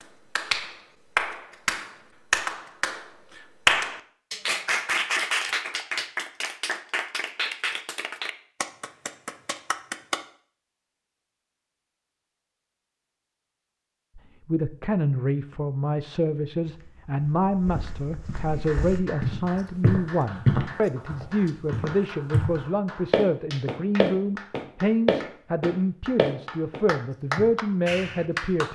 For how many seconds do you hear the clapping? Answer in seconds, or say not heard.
20 s.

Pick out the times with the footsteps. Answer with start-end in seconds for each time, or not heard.
16.6-27.5.